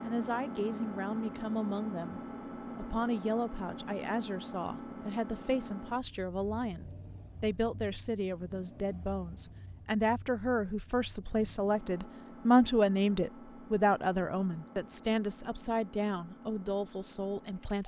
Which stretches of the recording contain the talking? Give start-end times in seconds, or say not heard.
0.1-17.8.